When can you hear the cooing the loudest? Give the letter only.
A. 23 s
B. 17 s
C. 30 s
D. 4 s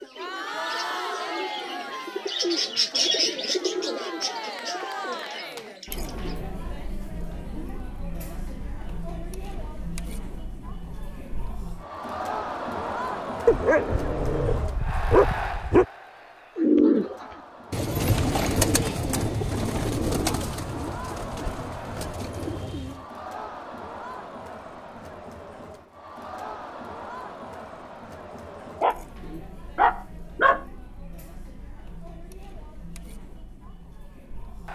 B.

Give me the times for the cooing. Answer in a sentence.
The cooing can be heard from 0.0 to 6.4 s and from 16.6 to 23.1 s.